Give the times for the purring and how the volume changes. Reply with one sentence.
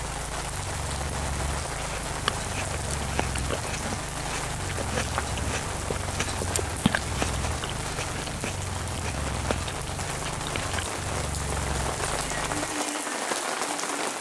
The purring can be heard from 0.0 to 12.8 s, at a steady volume.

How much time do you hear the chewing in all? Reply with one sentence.
You can hear the chewing for 9 seconds altogether.